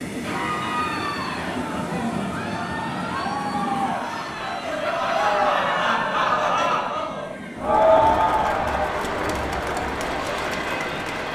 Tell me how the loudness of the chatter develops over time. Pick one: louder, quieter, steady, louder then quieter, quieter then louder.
louder then quieter.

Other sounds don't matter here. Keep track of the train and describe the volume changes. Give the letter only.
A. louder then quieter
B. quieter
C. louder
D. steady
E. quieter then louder
E.